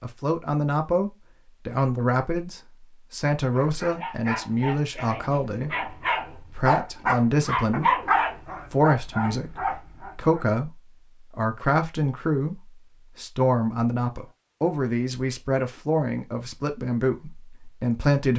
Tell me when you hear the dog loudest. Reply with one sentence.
The volume of the dog peaks at 8 seconds.